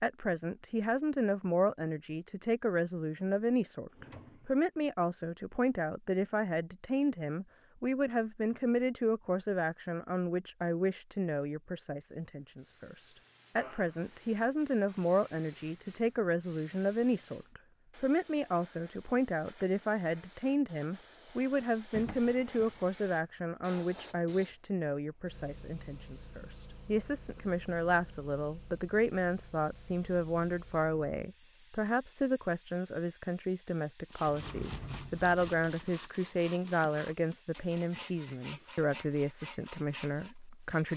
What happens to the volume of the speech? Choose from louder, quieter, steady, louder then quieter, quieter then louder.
steady.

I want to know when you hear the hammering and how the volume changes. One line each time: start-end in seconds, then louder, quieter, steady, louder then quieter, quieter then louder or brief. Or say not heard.
not heard.